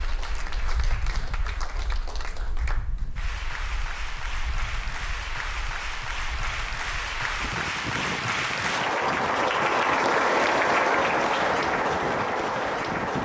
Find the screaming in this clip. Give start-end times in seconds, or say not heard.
not heard.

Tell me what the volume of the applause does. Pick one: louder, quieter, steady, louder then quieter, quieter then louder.
louder.